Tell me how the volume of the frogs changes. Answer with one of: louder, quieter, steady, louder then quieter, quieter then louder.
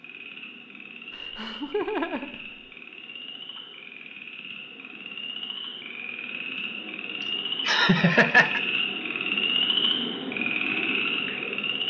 louder.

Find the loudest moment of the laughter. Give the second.
8 s.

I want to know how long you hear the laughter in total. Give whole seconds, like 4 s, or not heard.
3 s.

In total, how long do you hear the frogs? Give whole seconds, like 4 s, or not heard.
12 s.